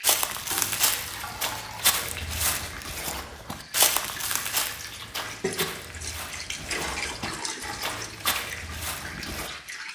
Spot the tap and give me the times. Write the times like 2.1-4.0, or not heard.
0.0-9.9.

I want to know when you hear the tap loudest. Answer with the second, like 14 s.
7 s.